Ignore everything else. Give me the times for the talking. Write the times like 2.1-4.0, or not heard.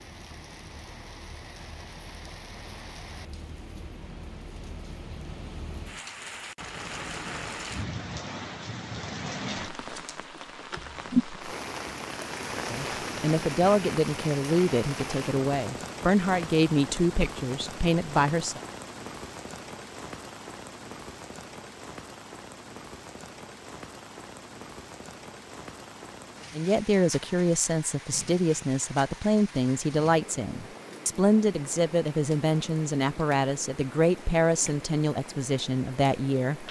12.7-18.6, 26.5-36.6.